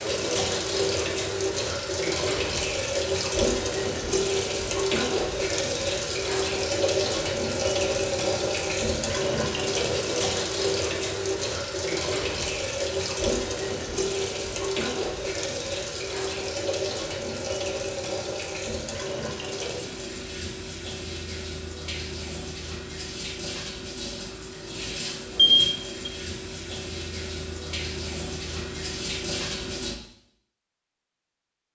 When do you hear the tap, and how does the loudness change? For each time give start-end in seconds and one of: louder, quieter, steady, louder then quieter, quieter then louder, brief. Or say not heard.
0.0-29.9 quieter.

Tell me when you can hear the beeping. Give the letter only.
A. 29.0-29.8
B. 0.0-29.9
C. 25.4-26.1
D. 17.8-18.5
C.